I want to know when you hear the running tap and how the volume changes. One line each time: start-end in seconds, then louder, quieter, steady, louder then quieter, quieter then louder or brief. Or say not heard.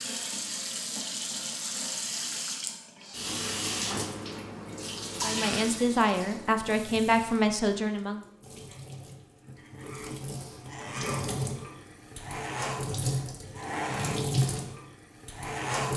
0.0-15.9 quieter then louder.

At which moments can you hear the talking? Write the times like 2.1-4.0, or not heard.
5.2-8.2.